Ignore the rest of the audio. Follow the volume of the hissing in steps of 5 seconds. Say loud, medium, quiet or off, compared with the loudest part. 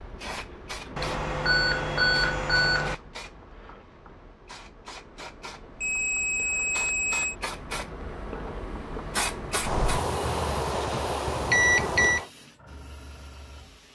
medium, loud, medium.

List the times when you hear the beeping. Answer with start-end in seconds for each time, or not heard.
0.9-3.0, 5.8-7.3, 9.7-12.2.